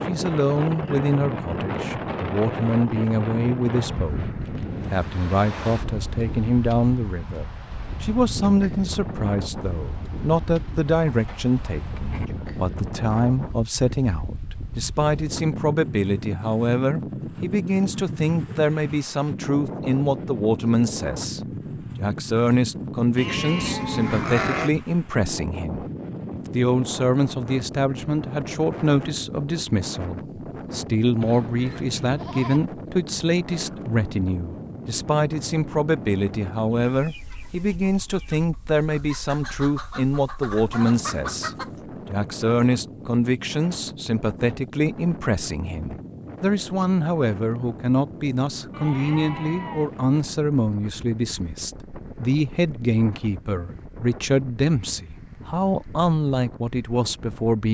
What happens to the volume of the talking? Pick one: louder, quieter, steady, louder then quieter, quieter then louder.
steady.